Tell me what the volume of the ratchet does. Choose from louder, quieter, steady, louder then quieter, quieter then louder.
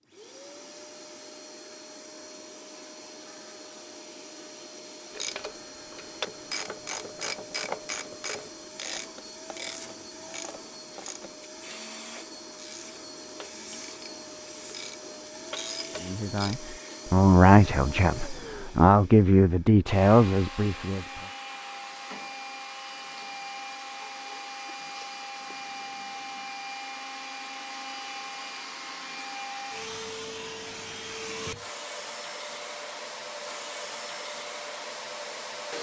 quieter then louder.